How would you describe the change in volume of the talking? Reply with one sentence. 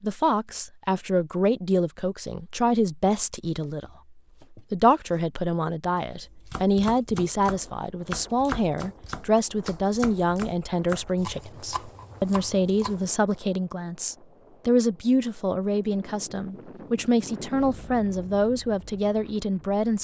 The loudness of the talking stays about the same.